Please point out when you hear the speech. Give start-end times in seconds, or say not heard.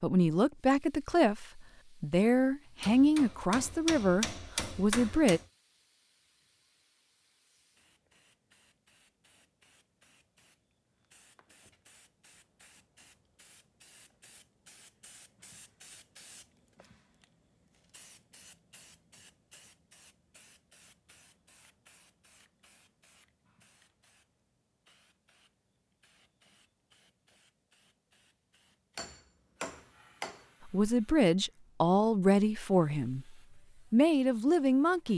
0.0-5.4, 30.6-35.1.